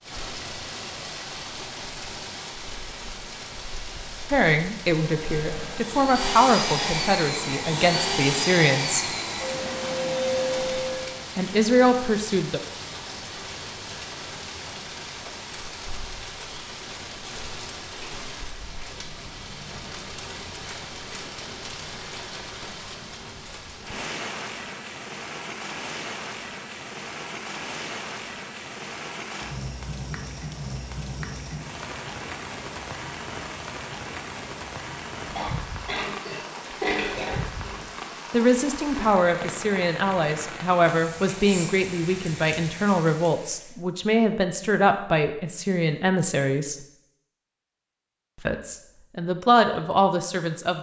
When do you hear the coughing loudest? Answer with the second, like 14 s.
37 s.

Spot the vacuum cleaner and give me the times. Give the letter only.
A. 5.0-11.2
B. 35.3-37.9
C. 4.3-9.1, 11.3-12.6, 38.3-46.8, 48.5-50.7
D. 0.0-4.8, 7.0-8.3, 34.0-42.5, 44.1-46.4
A.